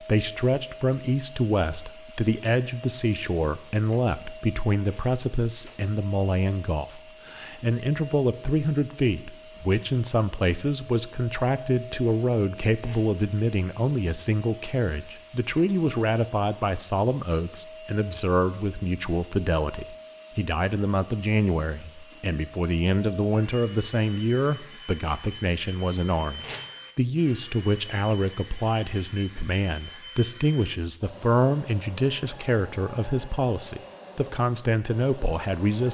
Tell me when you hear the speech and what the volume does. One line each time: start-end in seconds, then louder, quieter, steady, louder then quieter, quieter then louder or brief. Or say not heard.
0.0-35.8 steady.